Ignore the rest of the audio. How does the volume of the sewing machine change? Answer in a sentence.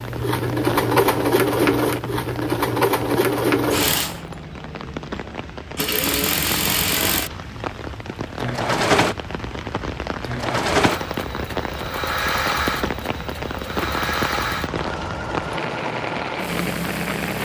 The loudness of the sewing machine goes down.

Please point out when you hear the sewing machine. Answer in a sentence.
You can hear the sewing machine from 0.0 to 17.4 s.